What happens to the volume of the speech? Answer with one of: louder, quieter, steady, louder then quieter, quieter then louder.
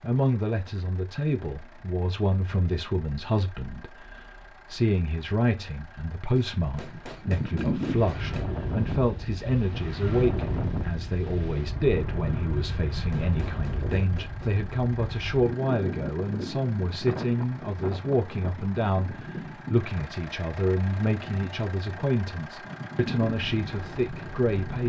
steady.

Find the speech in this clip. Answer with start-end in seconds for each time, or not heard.
0.0-24.8.